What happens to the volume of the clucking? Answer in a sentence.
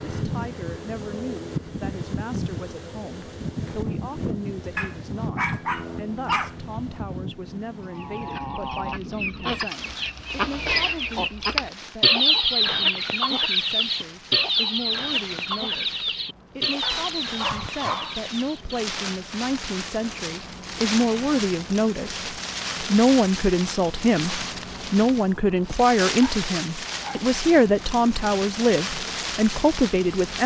The volume of the clucking goes up, then down.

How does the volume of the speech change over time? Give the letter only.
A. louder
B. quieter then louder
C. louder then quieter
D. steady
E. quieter
A.